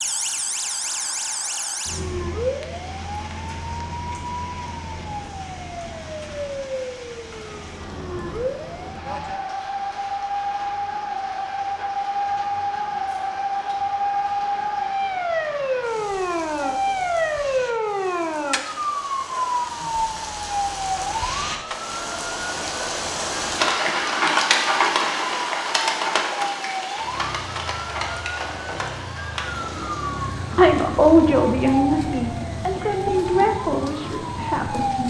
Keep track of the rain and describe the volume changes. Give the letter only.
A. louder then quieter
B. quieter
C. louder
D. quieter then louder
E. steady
A.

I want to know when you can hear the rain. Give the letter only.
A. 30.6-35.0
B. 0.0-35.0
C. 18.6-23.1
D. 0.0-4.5
B.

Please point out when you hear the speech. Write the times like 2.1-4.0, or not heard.
30.6-35.0.